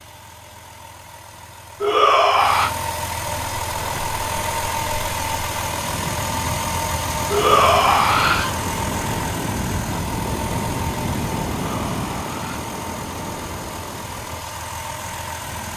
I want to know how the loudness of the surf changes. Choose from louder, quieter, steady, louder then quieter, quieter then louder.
louder then quieter.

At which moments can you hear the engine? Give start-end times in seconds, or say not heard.
0.0-15.7.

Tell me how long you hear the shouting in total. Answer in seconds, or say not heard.
3 s.